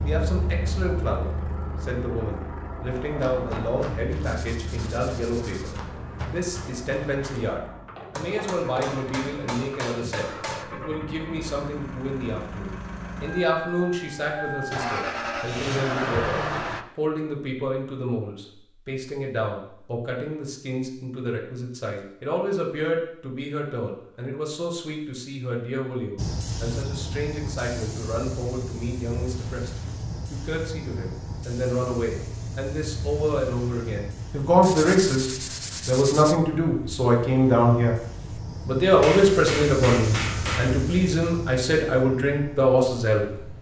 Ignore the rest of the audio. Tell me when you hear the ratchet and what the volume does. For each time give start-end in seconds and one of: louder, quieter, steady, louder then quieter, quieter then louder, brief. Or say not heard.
not heard.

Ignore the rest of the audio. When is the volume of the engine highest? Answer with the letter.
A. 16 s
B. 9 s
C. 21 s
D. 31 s
A.